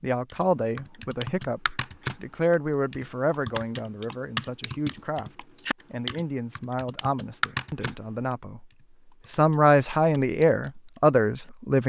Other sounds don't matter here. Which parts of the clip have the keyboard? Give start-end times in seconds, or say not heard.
0.3-11.5.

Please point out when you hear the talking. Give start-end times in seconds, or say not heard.
0.0-8.7, 9.2-11.8.